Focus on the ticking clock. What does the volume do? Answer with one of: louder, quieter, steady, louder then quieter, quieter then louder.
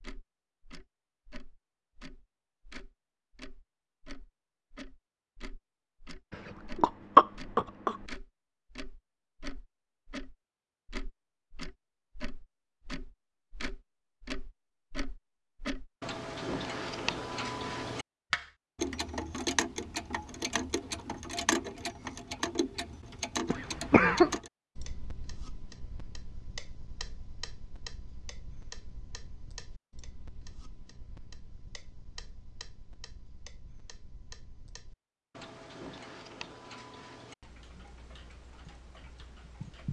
louder then quieter.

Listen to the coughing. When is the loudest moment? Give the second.
7 s.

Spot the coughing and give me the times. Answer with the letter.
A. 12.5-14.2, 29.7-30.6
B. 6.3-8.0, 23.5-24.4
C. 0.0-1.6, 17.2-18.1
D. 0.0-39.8
B.